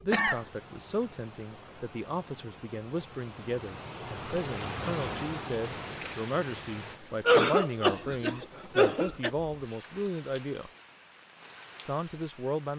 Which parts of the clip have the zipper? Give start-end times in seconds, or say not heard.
not heard.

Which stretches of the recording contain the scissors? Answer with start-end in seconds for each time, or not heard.
5.6-7.0.